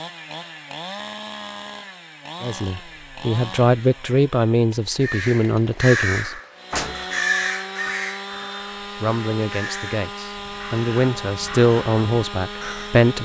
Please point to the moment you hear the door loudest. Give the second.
7 s.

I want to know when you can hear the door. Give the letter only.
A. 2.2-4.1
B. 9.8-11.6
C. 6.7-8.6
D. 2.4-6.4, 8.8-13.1
C.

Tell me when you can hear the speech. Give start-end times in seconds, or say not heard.
2.4-6.4, 8.8-13.1.